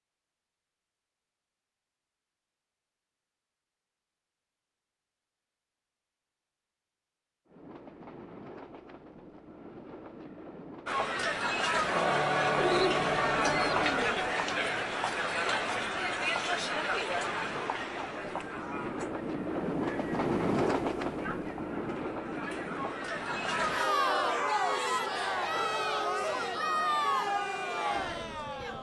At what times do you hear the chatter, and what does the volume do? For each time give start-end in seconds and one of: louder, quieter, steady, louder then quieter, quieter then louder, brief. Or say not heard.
10.8-28.7 quieter then louder.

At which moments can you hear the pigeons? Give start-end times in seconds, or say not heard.
12.6-14.3.